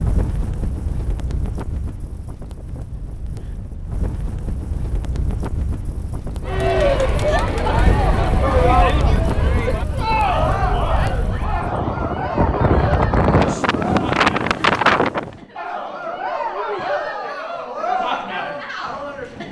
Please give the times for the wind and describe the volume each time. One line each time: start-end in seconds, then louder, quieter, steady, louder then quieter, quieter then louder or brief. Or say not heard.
0.0-15.4 louder.